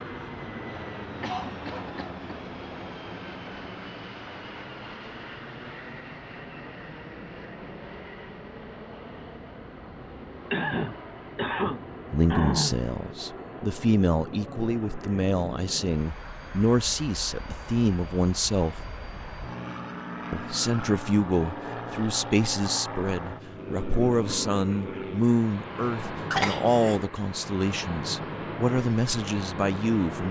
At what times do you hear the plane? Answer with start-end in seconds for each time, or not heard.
0.0-30.2.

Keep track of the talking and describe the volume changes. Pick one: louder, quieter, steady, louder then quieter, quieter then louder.
steady.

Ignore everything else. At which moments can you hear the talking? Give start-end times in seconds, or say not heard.
12.1-18.8, 20.3-30.2.